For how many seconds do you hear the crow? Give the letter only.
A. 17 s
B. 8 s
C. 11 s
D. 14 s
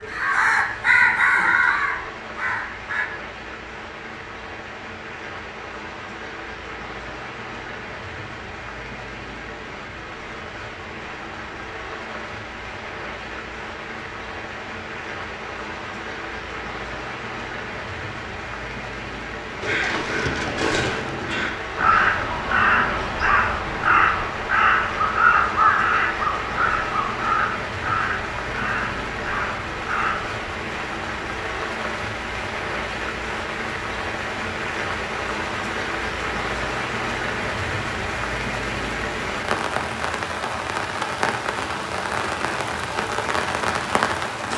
D.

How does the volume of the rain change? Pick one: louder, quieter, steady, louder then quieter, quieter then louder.
louder.